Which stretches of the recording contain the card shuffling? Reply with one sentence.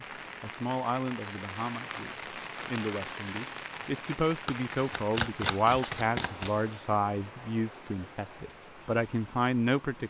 The card shuffling can be heard from 4.5 to 6.6 s.